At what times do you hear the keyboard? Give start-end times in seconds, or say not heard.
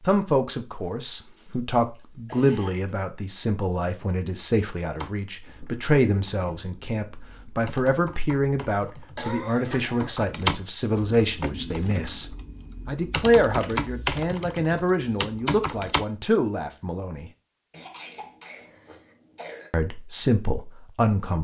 4.8-16.1.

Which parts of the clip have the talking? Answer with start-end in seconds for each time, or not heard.
0.1-12.2, 12.8-17.3, 19.7-21.3.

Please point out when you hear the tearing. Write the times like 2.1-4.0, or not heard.
not heard.